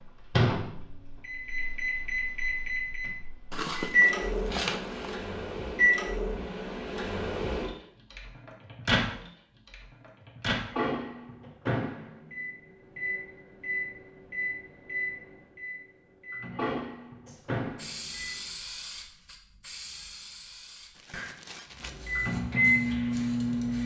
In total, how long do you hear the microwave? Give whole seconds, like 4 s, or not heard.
20 s.